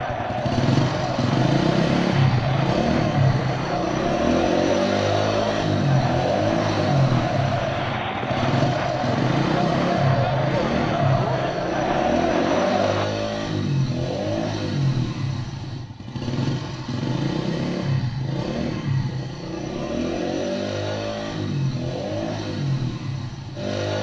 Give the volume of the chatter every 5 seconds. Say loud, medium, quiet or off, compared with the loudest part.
loud, loud, loud, off, off.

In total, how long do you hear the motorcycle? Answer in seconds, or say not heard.
24 s.